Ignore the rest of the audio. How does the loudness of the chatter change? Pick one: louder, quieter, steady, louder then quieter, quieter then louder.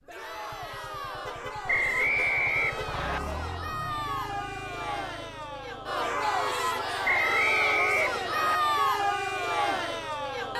louder.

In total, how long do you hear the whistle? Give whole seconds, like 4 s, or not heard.
3 s.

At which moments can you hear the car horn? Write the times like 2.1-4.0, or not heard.
1.2-2.9, 6.2-6.9.